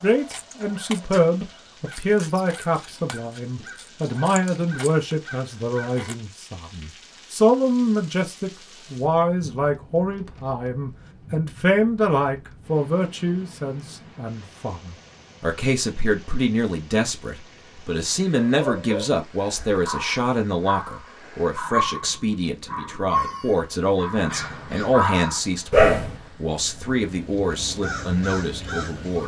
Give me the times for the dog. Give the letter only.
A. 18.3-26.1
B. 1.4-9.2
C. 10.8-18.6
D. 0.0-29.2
A.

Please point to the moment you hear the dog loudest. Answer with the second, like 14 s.
26 s.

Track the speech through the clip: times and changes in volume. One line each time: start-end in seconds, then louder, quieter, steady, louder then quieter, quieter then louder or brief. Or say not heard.
0.0-29.2 steady.